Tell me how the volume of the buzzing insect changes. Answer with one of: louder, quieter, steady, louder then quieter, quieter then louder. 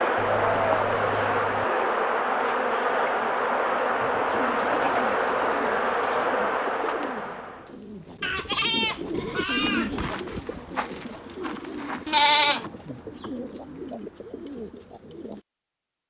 steady.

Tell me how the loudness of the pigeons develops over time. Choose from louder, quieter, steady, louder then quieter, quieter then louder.
louder then quieter.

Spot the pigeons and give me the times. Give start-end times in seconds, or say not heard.
4.0-15.4.